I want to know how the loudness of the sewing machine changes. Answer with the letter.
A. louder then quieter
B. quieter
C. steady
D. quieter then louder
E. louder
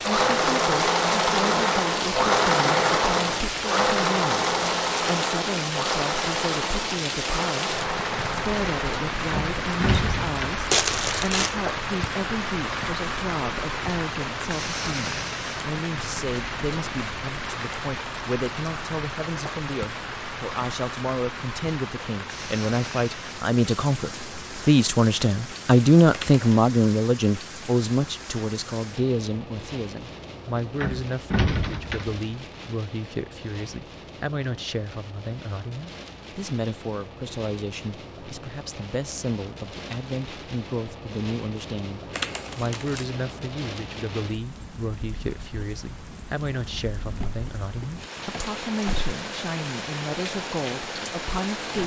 B.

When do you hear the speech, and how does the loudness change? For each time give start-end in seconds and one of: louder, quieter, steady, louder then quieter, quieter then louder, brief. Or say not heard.
0.0-51.8 louder then quieter.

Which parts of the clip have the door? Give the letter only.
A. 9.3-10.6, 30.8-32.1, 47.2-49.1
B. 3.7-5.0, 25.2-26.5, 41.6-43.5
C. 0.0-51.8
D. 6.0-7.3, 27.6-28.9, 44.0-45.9
A.